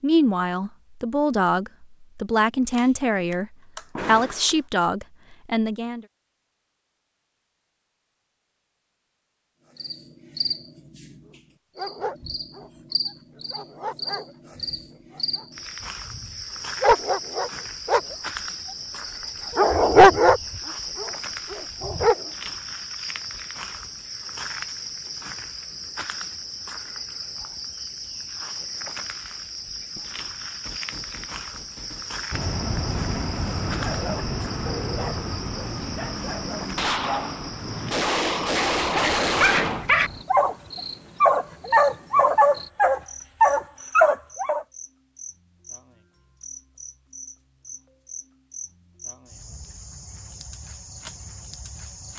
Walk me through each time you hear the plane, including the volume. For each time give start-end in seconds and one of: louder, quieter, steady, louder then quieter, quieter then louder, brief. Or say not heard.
32.3-40.2 quieter.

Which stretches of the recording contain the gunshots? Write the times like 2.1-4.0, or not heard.
2.7-4.5, 29.9-32.4, 36.8-39.9.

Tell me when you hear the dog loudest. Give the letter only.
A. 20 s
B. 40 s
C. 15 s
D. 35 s
A.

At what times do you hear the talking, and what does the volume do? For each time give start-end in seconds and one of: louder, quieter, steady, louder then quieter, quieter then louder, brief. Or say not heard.
0.0-6.0 steady.